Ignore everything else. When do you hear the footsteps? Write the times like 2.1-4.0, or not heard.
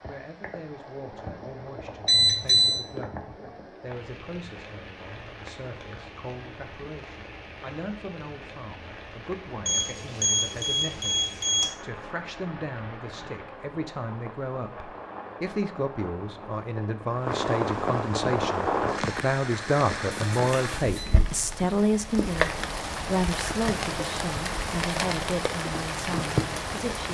not heard.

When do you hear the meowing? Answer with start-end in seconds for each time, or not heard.
not heard.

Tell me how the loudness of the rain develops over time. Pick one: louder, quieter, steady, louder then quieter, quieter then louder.
louder.